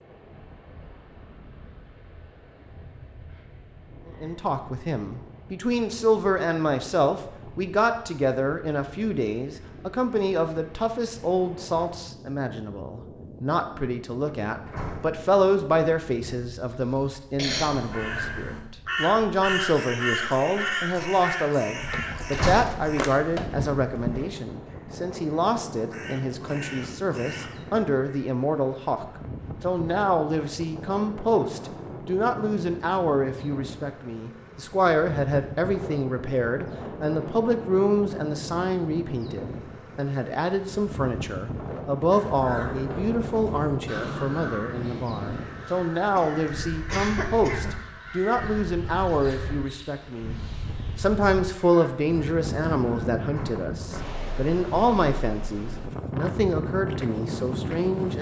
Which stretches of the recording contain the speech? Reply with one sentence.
The speech can be heard from 4.2 to 50.4 s and from 51.0 to 58.1 s.